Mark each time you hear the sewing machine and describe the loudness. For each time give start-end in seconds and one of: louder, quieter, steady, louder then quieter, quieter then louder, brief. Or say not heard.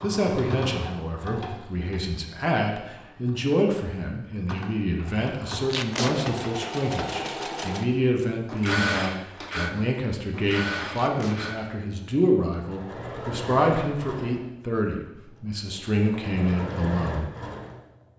0.0-18.1 louder then quieter.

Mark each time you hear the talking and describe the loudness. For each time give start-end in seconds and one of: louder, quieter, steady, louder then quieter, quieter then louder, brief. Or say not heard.
0.0-17.3 steady.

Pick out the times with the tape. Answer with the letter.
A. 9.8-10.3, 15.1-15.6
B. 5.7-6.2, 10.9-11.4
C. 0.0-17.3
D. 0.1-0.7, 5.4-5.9
B.